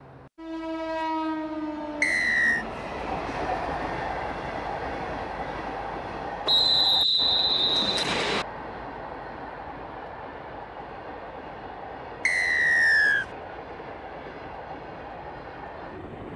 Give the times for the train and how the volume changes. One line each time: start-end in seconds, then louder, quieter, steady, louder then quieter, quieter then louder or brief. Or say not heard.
0.0-16.3 quieter.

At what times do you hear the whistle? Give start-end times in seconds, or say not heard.
2.0-2.6, 6.5-8.4, 12.2-13.2.